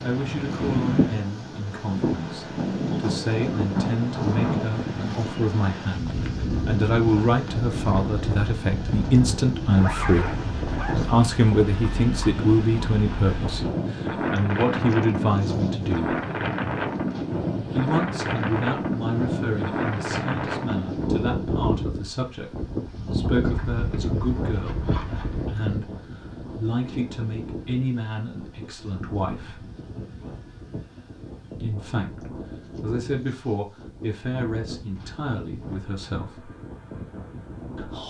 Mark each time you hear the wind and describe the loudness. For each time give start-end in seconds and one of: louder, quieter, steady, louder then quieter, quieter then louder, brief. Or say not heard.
0.0-38.0 quieter.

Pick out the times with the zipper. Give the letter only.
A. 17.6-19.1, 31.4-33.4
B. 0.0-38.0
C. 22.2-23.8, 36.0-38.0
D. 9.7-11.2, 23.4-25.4
D.